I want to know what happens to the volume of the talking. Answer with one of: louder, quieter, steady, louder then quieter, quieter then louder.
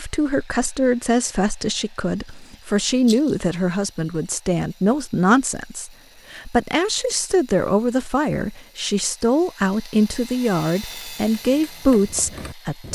steady.